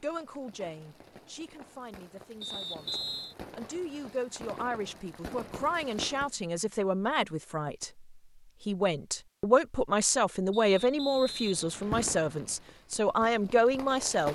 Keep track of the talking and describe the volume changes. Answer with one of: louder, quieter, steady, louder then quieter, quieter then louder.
louder.